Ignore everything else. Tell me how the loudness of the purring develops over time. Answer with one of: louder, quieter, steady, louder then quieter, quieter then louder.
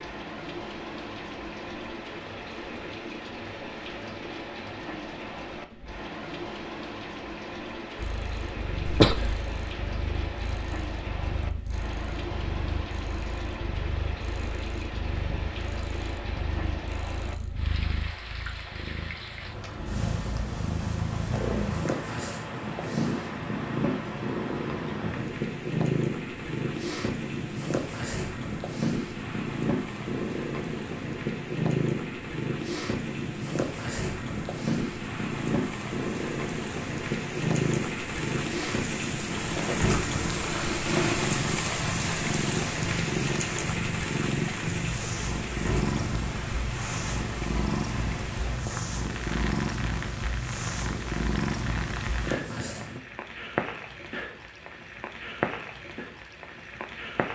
louder.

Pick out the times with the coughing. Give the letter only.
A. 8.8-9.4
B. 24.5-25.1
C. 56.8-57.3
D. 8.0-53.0
A.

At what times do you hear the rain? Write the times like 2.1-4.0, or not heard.
0.0-57.3.